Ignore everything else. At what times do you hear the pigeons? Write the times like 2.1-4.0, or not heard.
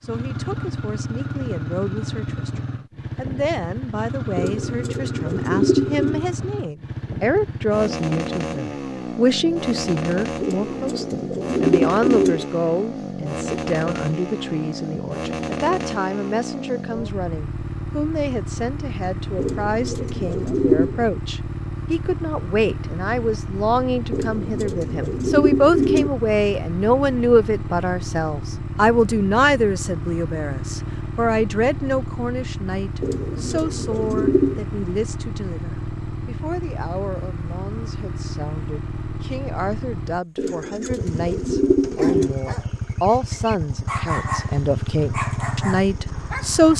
4.3-6.2, 10.4-12.4, 19.4-21.1, 24.1-26.1, 33.0-34.6, 40.4-42.4.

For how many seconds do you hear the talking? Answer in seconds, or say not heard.
47 s.